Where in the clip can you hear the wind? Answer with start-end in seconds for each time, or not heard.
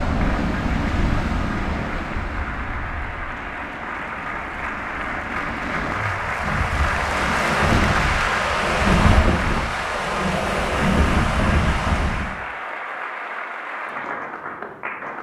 0.0-12.3.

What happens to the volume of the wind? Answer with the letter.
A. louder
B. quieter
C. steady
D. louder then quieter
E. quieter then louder
E.